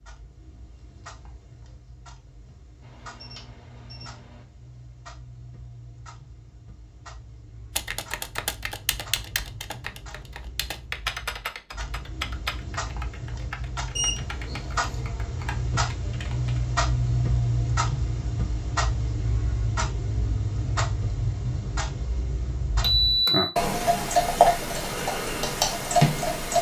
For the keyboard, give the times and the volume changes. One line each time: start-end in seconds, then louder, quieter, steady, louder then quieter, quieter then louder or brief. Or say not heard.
7.8-16.6 quieter.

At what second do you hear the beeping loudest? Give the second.
23 s.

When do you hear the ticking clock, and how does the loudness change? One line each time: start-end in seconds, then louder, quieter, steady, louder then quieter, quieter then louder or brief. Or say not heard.
0.0-26.5 louder.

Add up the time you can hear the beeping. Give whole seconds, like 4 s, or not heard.
3 s.